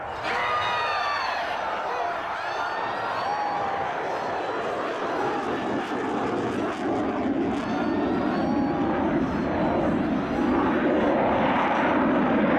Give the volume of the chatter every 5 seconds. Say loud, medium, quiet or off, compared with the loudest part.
loud, medium, medium.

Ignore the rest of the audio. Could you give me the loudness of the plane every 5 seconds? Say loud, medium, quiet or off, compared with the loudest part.
medium, loud, loud.